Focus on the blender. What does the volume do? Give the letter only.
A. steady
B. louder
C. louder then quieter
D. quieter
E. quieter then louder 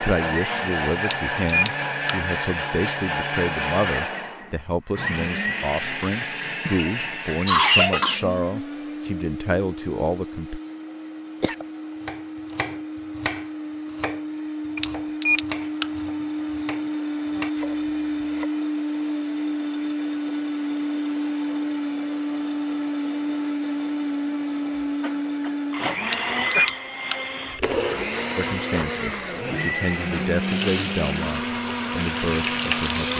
E.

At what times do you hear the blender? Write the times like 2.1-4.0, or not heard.
0.0-33.1.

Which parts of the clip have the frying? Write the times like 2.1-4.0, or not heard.
30.4-33.1.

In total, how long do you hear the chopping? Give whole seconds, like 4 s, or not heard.
7 s.